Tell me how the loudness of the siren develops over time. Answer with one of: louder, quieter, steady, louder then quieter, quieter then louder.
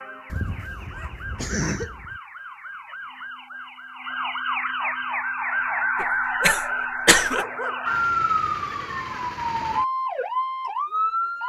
louder.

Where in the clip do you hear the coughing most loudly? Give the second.
7 s.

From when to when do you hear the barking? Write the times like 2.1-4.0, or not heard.
0.3-2.2, 6.4-7.8.